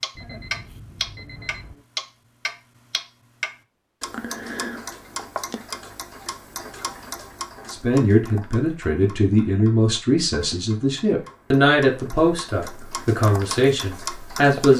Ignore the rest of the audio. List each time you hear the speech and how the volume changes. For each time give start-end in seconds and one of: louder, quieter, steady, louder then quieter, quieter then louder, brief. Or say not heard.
7.7-14.7 steady.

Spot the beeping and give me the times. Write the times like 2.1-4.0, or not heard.
0.1-1.8.